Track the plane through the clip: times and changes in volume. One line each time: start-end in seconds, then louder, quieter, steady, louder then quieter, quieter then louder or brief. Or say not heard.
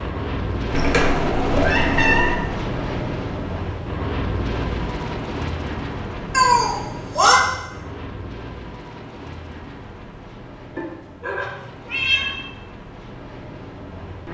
0.0-14.3 quieter.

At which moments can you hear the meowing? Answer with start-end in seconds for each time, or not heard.
0.7-2.5, 6.3-7.5, 10.8-12.3.